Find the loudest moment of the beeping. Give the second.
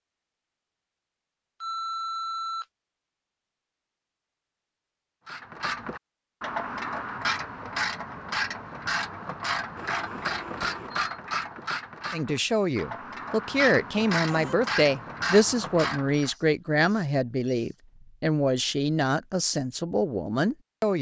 2 s.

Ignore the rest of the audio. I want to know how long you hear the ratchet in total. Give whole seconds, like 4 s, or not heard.
11 s.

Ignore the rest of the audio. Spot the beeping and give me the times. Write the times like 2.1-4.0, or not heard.
1.6-2.6, 9.8-11.1, 16.1-17.8.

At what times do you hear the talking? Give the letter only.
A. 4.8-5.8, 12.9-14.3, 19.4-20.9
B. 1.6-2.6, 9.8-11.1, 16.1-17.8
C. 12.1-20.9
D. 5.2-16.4
C.